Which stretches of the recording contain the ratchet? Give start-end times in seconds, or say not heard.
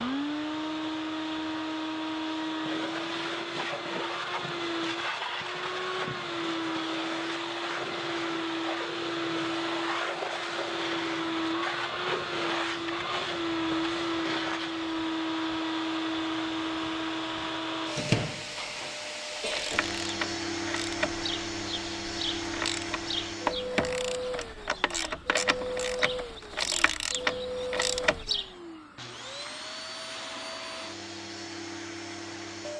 19.4-28.5.